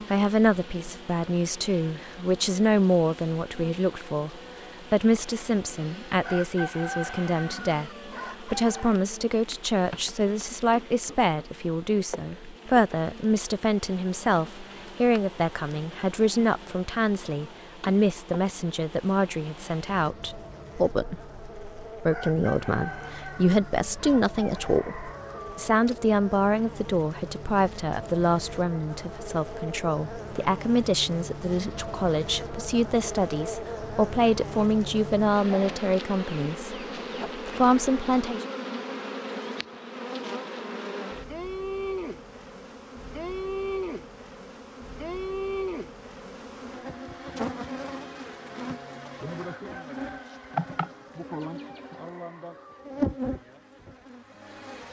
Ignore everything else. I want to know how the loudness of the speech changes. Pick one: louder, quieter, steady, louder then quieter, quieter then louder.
steady.